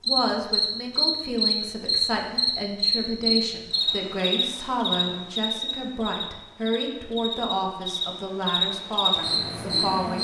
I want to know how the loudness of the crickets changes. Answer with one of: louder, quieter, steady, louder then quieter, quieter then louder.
quieter then louder.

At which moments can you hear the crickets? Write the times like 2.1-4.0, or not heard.
0.0-10.1.